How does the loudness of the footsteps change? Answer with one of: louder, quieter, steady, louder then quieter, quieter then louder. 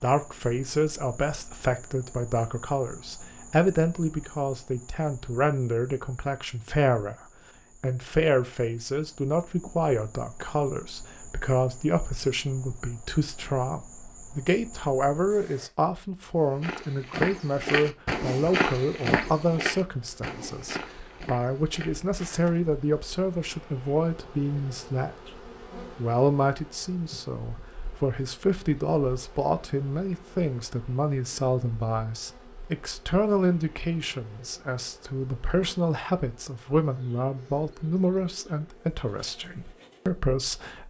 quieter.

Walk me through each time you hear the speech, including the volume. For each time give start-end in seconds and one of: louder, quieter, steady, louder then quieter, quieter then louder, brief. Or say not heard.
0.0-40.8 steady.